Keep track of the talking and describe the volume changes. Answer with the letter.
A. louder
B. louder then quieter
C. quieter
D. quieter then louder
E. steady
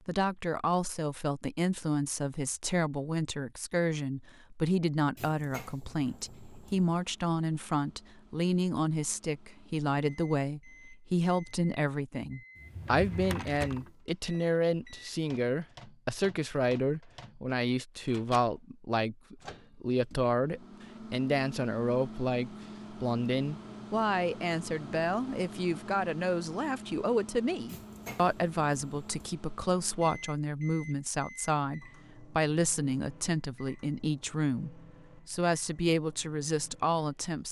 E.